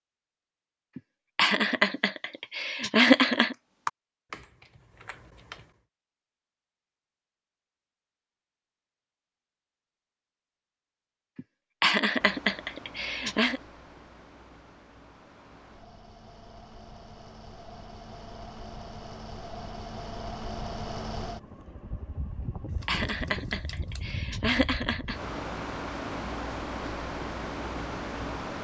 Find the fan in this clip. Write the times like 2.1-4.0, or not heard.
12.2-28.5.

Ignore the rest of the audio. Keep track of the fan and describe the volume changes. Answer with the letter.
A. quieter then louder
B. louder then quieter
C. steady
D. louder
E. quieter
D.